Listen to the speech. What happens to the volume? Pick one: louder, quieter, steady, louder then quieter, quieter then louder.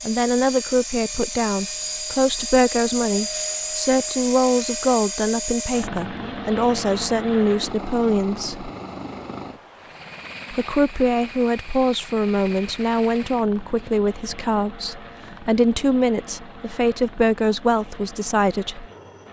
steady.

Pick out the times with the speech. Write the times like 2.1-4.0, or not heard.
0.1-8.7, 10.5-18.9.